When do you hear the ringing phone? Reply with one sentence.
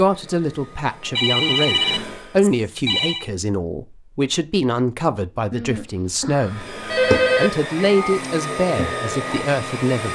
The ringing phone can be heard from 1.1 to 3.2 s and from 5.5 to 7.5 s.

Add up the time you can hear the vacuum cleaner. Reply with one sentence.
The vacuum cleaner can be heard for 6 seconds in total.